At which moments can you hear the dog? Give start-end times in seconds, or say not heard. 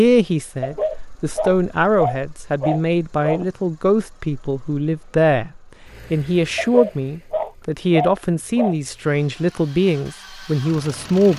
0.6-3.5, 6.5-8.8.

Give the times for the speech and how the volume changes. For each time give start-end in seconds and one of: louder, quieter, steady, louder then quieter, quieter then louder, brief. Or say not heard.
0.0-11.3 steady.